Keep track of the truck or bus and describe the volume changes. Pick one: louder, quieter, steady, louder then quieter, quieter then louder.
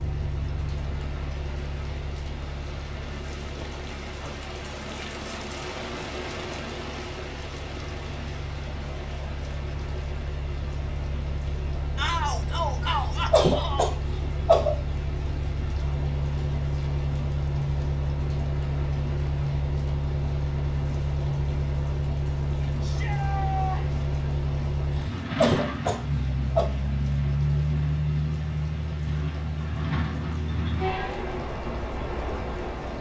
louder.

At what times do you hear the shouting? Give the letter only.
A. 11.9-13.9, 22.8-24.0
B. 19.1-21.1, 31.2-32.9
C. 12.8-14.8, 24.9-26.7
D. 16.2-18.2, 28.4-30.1
A.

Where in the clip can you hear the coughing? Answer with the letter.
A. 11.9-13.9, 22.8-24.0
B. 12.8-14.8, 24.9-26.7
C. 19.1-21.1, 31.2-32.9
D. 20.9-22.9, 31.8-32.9
B.